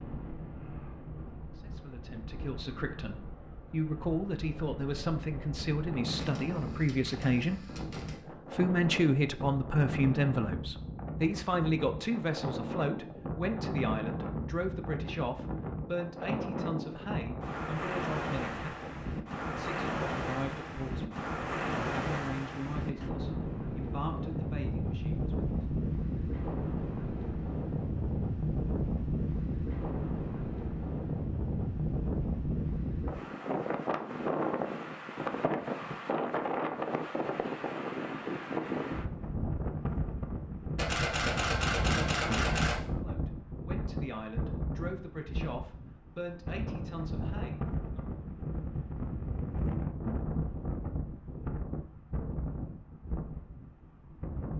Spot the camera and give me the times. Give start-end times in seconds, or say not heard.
6.2-8.2, 40.8-42.8.